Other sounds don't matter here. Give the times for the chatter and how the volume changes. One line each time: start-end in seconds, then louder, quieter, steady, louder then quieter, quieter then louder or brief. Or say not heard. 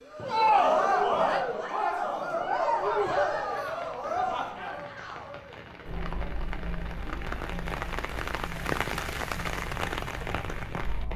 0.1-11.1 quieter.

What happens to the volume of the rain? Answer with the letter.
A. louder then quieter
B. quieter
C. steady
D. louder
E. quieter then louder
D.